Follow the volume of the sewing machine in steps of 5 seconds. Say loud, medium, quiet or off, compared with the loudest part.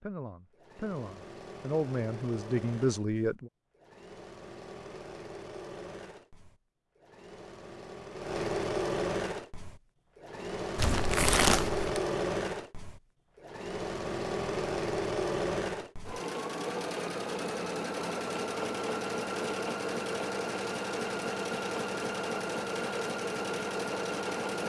quiet, loud, loud, loud, loud.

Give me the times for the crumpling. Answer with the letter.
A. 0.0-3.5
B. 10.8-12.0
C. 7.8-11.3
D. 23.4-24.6
B.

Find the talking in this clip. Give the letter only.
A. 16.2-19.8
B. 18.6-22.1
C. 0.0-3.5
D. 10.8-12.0
C.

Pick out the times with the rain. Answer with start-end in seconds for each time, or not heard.
not heard.